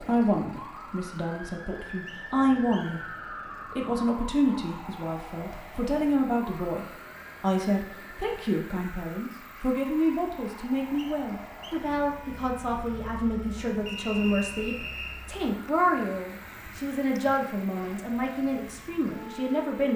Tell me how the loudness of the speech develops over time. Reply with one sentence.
The loudness of the speech stays about the same.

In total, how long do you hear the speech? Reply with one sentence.
You can hear the speech for 19 seconds altogether.